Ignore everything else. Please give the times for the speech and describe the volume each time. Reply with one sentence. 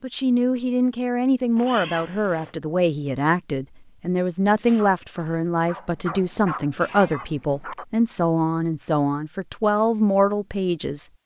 You can hear the speech from 0.0 to 11.1 s, at a steady volume.